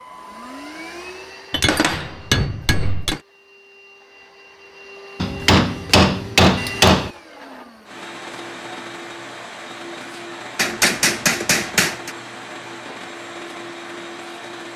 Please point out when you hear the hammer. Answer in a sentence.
You can hear the hammer from 1.5 to 3.2 s, from 5.2 to 7.1 s and from 10.6 to 12.1 s.